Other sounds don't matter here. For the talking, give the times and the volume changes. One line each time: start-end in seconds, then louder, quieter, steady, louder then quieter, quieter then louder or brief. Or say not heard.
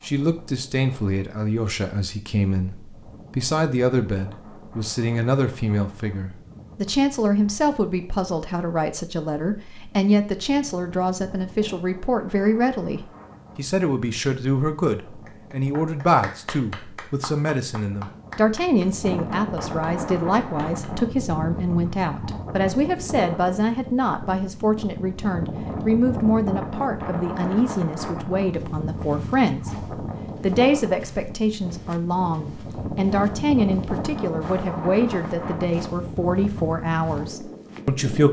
0.0-2.8 brief
3.4-29.7 steady
30.4-38.2 steady.